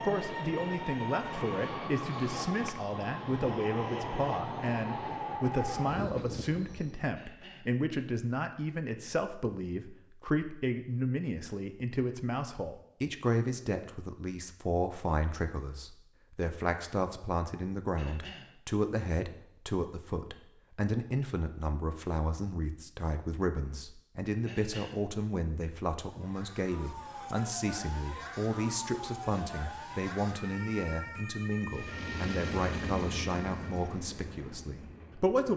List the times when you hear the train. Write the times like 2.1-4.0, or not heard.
0.0-7.1, 31.7-35.4.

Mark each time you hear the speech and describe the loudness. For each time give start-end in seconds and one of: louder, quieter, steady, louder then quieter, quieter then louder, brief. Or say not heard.
0.0-35.5 steady.